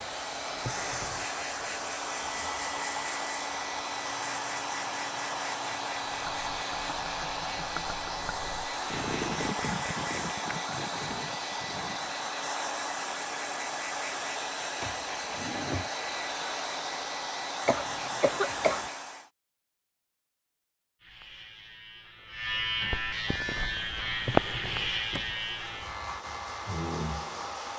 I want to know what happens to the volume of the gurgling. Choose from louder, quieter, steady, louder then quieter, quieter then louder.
louder then quieter.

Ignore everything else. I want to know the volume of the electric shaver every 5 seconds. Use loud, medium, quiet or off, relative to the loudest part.
quiet, quiet, off, off, loud, medium.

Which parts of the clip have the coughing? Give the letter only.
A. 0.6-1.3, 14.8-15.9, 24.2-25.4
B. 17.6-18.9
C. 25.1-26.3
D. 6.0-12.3
B.